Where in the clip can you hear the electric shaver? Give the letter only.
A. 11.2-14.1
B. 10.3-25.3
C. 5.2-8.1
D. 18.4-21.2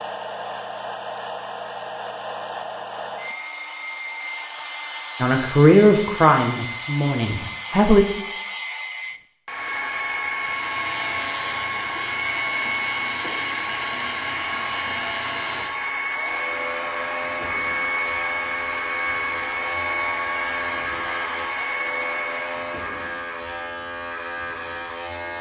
B.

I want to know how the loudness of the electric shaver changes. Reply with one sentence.
The loudness of the electric shaver stays about the same.